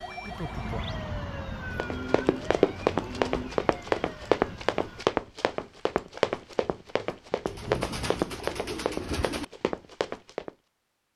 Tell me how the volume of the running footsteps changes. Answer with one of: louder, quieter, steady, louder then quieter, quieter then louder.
quieter.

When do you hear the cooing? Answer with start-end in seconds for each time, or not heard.
1.6-3.6, 7.5-9.4.